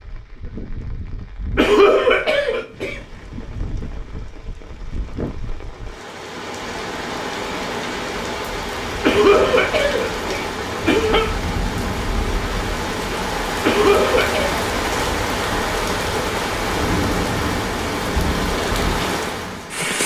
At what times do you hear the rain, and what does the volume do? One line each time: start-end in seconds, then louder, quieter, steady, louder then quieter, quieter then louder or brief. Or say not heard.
0.0-20.0 louder.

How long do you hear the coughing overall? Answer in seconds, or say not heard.
5 s.